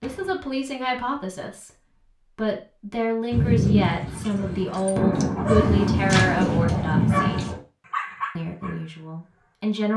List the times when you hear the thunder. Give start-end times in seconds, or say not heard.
3.3-7.6.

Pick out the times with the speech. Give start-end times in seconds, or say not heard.
0.0-7.5, 8.3-9.9.